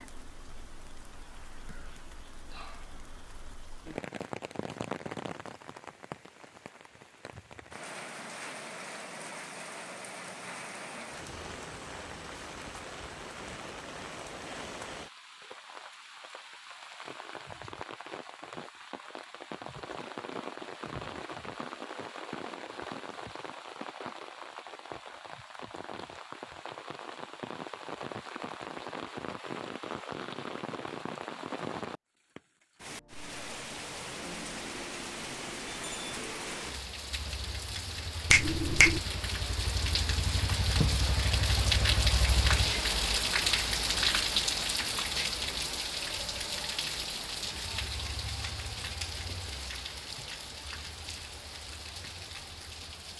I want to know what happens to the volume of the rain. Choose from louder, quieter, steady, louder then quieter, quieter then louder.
louder.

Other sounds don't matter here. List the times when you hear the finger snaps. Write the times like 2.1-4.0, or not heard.
38.3-39.0.